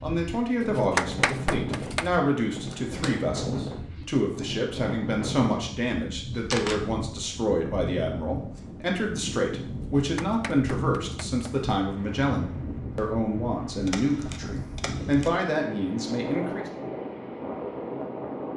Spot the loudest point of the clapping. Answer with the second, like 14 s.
1 s.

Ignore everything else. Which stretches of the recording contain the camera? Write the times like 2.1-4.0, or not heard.
2.6-3.1, 6.3-6.8, 13.8-15.3.